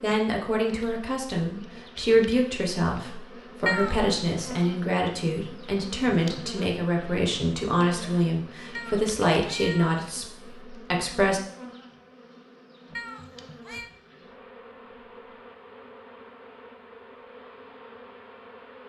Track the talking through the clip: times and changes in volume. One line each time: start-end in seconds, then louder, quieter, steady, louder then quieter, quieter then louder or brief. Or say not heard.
0.0-11.4 steady.